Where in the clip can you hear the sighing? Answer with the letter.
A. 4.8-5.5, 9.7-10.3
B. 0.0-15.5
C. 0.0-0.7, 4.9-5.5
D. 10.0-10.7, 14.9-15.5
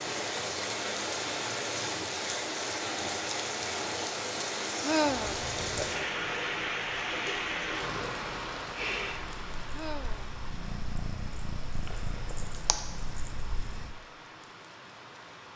A.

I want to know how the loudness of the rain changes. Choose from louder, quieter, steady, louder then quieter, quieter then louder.
quieter.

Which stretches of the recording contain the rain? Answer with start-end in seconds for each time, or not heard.
0.0-15.5.